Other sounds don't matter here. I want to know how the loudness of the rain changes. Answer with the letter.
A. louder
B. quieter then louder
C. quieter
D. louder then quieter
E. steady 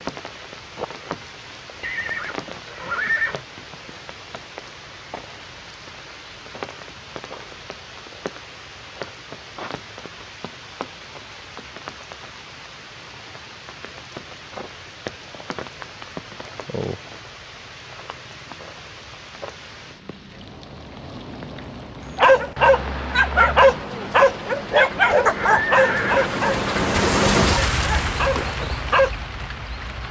A.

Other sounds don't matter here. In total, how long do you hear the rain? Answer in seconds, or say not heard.
30 s.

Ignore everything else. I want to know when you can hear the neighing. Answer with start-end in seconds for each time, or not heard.
1.8-3.4, 25.3-26.4.